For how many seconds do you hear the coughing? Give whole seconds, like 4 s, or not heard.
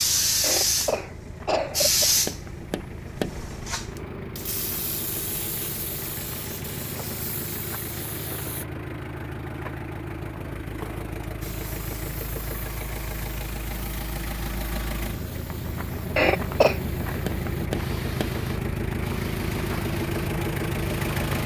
2 s.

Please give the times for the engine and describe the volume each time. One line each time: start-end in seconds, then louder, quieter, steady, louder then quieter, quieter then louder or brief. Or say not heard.
0.0-21.4 louder.